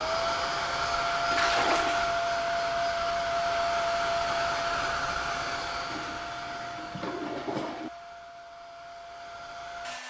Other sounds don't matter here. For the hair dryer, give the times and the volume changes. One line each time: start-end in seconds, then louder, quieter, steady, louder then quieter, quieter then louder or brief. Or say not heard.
0.0-10.0 quieter.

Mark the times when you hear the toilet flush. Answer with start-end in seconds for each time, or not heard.
1.3-2.1, 5.8-7.9.